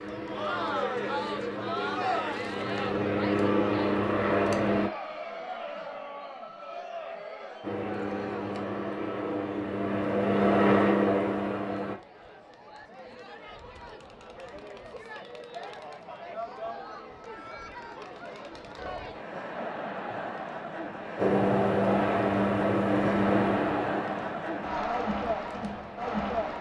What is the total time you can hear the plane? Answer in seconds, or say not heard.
15 s.